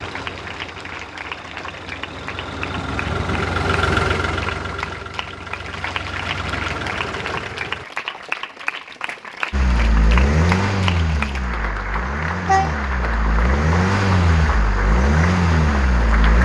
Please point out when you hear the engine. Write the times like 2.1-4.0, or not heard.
0.0-7.8, 9.5-16.3.